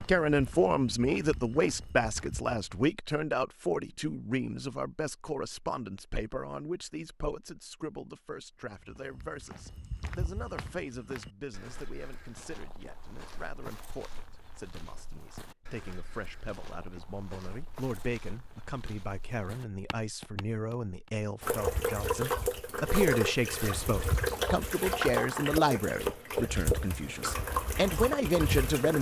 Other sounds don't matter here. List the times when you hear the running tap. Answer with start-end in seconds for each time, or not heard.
21.4-28.9.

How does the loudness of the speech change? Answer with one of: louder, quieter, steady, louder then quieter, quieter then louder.
quieter then louder.